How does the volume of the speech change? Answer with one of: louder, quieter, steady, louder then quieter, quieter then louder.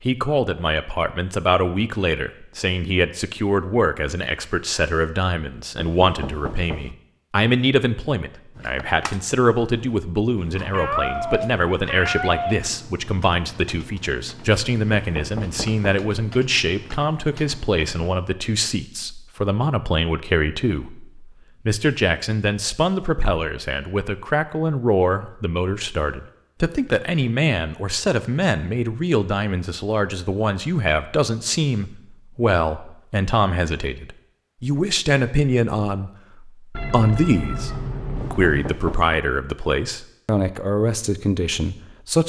steady.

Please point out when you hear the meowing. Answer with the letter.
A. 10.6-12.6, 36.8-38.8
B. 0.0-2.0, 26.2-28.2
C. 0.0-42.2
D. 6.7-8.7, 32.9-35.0
A.